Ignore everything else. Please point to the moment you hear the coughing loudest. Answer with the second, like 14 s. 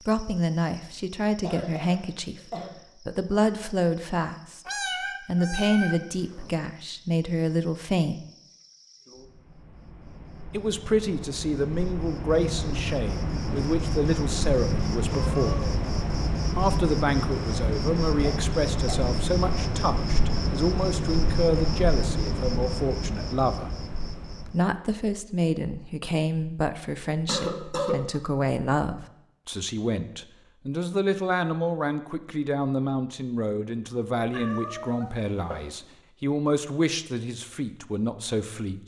28 s.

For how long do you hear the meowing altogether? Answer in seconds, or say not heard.
4 s.